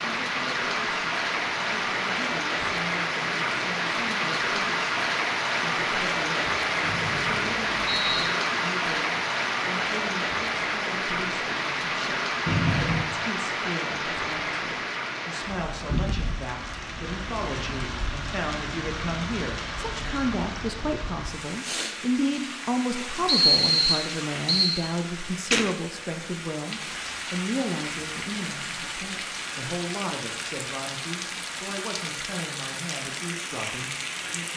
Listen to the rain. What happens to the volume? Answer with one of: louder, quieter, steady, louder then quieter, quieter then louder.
quieter.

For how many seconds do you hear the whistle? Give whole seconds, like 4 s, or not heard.
4 s.